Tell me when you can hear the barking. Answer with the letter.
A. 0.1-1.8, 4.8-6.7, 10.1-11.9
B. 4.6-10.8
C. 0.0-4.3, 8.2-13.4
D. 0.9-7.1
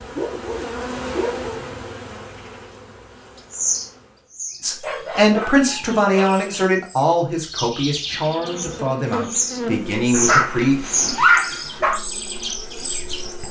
A.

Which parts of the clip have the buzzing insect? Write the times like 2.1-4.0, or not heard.
0.0-4.3, 8.2-13.4.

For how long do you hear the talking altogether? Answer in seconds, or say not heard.
6 s.